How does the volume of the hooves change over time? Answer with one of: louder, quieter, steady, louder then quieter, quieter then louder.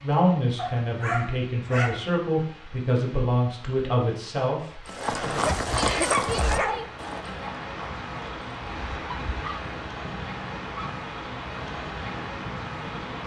quieter.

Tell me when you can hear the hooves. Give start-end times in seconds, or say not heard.
4.8-13.2.